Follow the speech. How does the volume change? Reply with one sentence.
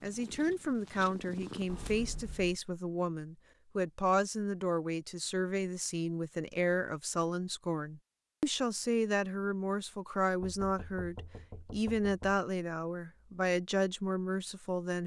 The volume of the speech stays about the same.